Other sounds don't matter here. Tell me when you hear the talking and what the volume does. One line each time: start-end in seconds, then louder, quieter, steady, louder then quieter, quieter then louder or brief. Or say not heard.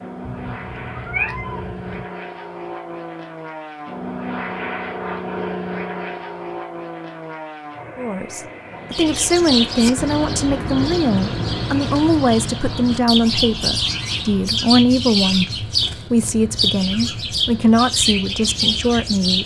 8.0-19.4 steady.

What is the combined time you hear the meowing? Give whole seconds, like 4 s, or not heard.
2 s.